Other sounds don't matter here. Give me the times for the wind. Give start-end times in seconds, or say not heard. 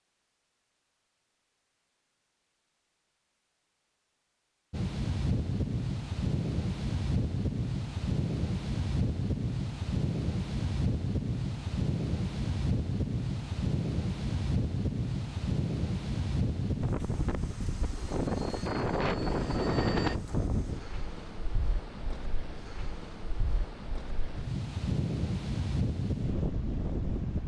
4.7-27.4.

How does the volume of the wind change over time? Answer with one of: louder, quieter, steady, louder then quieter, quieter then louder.
steady.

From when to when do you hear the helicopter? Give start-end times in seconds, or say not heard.
17.9-20.2.